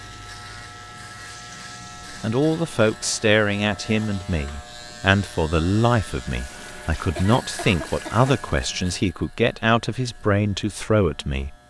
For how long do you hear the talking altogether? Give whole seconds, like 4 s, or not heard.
9 s.